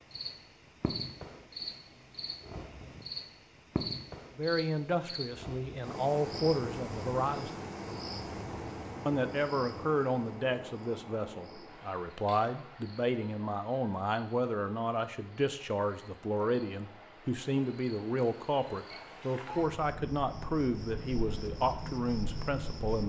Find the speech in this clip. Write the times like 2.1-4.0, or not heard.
4.3-7.6, 9.1-23.0.